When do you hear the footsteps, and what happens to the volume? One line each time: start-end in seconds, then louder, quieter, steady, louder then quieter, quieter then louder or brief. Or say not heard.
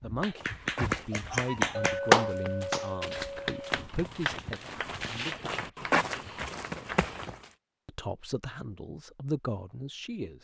0.3-7.5 louder.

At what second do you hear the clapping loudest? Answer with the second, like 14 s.
2 s.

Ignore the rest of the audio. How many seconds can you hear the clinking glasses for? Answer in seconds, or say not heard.
2 s.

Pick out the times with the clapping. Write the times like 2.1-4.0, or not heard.
0.0-7.2.